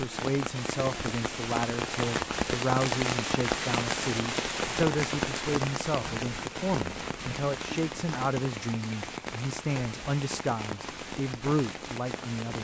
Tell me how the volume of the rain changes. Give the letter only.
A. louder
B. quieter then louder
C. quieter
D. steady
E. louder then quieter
C.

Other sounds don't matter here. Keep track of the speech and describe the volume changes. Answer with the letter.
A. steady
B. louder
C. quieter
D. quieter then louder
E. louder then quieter
A.